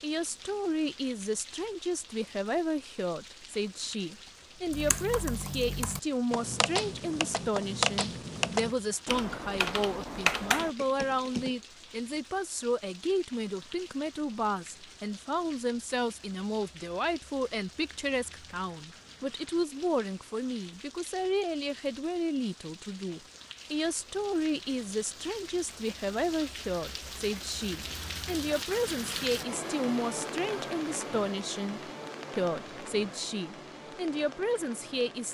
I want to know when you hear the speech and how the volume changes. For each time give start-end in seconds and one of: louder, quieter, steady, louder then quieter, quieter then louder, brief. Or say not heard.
0.0-35.2 steady.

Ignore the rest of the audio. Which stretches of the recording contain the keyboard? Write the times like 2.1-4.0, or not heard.
4.7-11.6.